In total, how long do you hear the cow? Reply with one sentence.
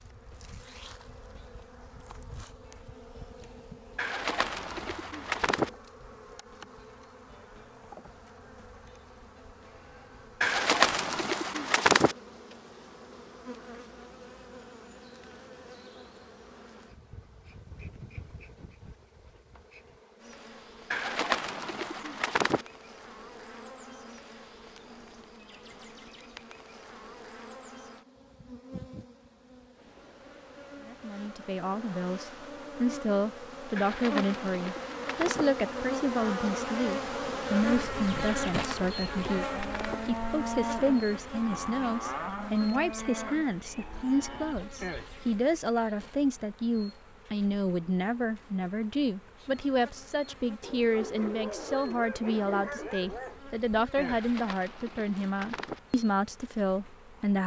You can hear the cow for 6 seconds altogether.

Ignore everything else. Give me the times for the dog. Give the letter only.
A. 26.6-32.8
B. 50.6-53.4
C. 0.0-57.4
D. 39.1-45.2
B.